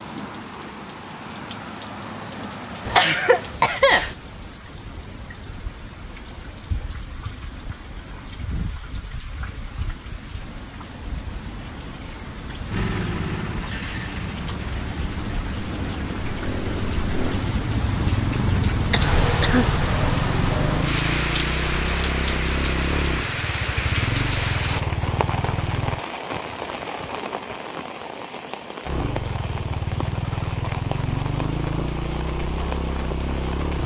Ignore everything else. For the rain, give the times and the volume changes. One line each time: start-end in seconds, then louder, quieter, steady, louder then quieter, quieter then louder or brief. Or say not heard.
0.0-33.8 louder then quieter.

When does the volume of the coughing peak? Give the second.
4 s.